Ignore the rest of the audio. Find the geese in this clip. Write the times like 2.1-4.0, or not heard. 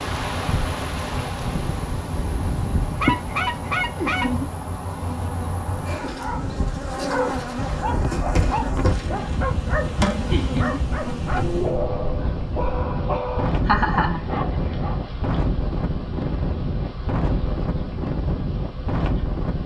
3.0-4.3.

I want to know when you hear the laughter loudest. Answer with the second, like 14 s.
14 s.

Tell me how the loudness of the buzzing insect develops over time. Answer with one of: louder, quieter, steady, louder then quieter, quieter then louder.
quieter.